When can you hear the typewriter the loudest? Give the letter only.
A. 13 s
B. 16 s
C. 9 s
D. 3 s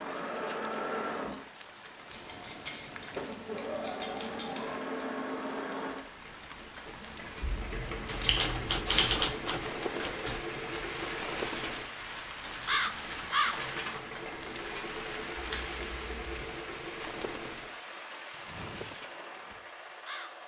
C.